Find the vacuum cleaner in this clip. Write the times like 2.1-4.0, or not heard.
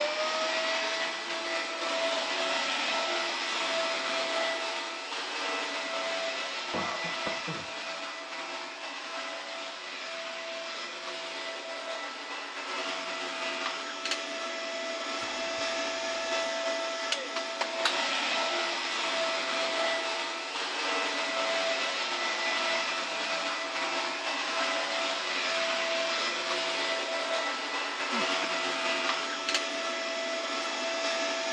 0.0-31.4.